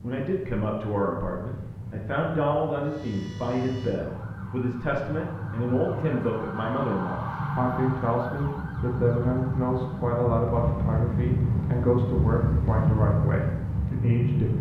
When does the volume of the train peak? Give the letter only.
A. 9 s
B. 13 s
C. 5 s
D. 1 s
B.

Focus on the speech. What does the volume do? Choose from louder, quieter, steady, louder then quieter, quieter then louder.
steady.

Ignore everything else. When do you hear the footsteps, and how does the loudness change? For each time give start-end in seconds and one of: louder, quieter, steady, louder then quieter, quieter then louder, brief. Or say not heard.
not heard.